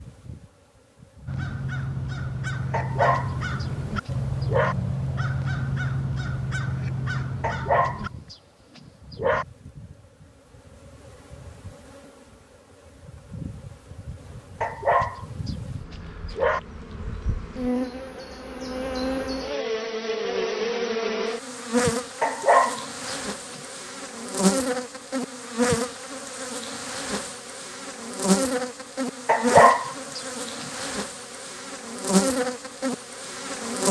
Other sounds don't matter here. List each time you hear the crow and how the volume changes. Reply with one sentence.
The crow can be heard from 1.2 to 8.1 s, at a steady volume.